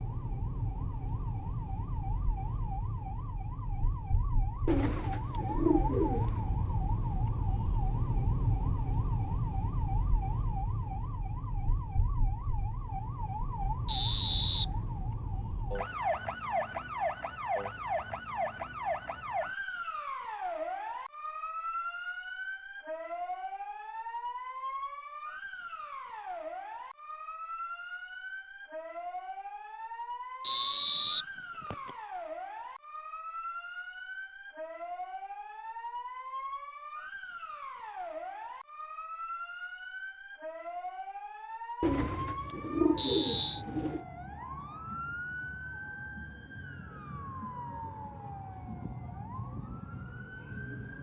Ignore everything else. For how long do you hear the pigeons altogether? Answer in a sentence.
The pigeons can be heard for 4 seconds in total.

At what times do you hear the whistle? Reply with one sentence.
You can hear the whistle from 13.8 to 14.7 s, from 30.4 to 31.9 s and from 43.0 to 43.6 s.